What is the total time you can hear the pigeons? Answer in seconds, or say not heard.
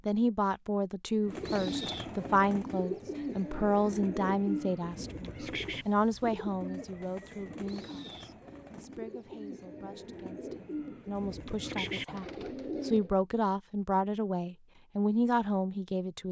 12 s.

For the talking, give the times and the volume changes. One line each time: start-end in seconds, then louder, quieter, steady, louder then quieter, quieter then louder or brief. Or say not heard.
0.1-16.2 quieter then louder.